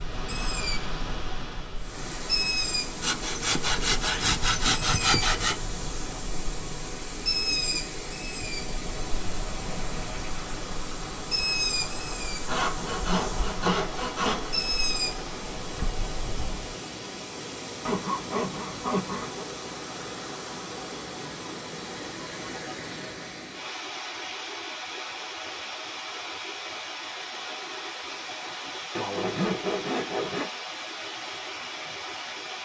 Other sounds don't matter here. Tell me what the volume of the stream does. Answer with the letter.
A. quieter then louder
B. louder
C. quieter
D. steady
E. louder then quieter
D.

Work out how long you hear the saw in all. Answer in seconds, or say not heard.
8 s.